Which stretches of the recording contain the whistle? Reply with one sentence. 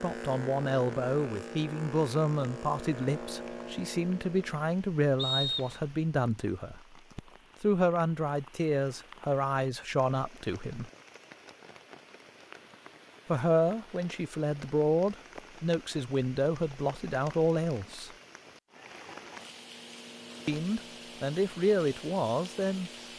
You can hear the whistle from 5.2 to 5.8 s.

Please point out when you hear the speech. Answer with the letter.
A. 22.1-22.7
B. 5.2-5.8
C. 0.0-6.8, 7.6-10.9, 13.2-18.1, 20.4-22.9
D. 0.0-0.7
C.